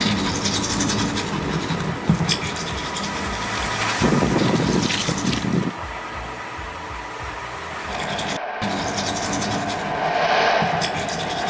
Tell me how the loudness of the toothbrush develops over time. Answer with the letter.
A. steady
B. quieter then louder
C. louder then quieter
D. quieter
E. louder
D.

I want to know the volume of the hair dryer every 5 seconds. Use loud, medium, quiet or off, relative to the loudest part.
medium, medium, loud.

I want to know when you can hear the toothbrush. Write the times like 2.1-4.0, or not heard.
0.0-5.6, 7.8-11.4.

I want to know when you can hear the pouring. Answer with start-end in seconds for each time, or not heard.
4.0-5.8.